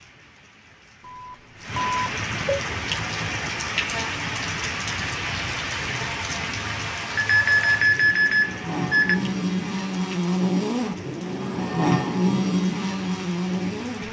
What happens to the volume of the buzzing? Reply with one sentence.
The volume of the buzzing goes up.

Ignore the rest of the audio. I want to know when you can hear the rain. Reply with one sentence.
The rain can be heard from 0.0 to 14.0 s.